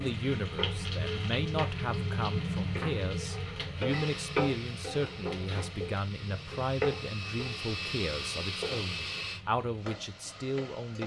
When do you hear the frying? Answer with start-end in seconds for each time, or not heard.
0.0-11.0.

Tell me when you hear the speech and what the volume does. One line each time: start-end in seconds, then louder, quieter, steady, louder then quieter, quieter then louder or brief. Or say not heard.
0.0-11.0 steady.